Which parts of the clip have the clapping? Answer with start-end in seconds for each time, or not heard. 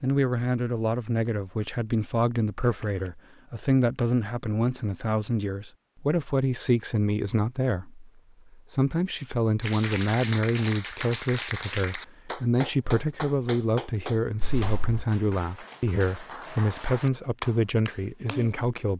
9.6-18.6.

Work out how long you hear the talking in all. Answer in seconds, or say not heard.
19 s.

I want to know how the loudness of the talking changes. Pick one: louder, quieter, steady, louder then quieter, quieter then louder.
steady.